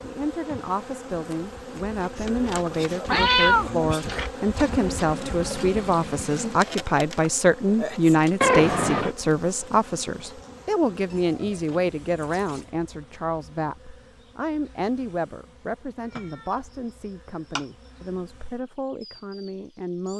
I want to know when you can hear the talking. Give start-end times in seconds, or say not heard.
0.0-20.1.